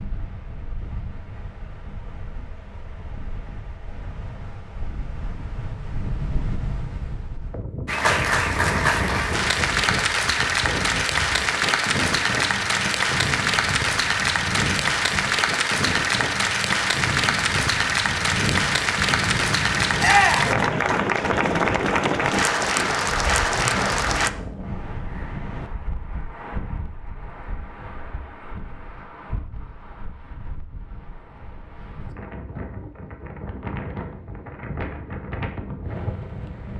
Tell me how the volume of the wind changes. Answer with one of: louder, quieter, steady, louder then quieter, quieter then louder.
louder then quieter.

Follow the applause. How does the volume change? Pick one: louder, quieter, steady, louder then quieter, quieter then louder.
steady.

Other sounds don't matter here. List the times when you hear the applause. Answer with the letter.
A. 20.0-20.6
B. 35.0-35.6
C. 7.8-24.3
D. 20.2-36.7
C.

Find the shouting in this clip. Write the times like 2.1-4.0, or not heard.
20.0-20.6.